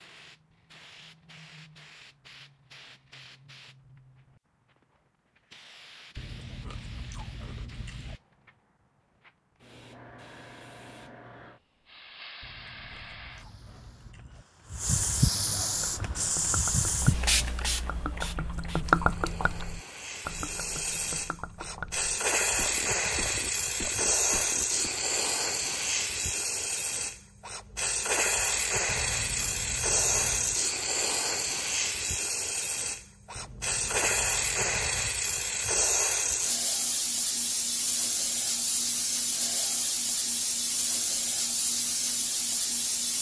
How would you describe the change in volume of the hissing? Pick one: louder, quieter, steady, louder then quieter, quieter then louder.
louder.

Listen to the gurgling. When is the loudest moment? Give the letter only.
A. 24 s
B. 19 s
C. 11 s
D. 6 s
B.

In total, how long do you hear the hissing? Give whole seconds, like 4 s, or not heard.
43 s.